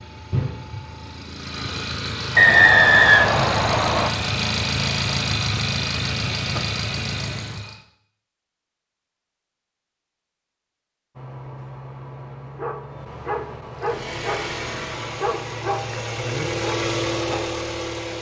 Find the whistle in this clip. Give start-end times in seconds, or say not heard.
2.4-4.1.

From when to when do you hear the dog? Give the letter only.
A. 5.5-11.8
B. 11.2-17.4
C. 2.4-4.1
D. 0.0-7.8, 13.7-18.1
B.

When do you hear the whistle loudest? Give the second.
3 s.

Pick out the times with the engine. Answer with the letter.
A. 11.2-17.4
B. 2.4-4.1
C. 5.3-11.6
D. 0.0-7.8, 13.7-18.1
D.